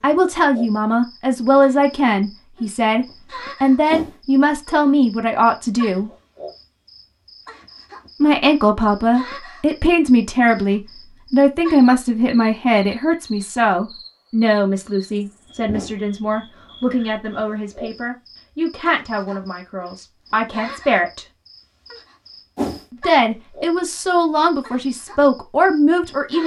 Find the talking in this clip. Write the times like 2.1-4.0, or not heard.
0.0-6.1, 8.2-21.2, 23.0-26.4.